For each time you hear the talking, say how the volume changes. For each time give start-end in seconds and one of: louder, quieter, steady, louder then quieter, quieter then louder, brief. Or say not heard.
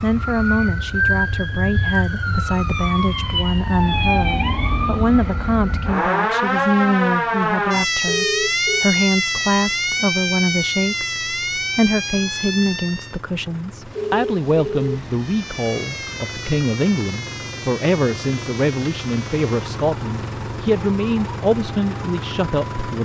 0.0-23.0 steady.